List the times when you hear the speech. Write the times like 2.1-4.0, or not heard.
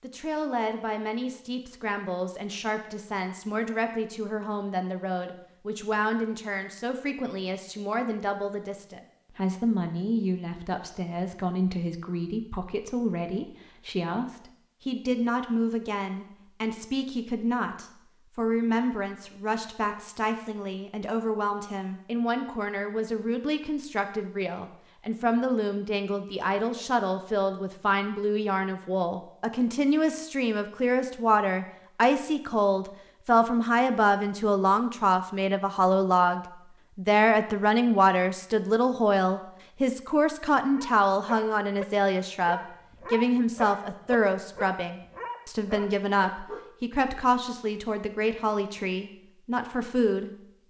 0.0-50.6.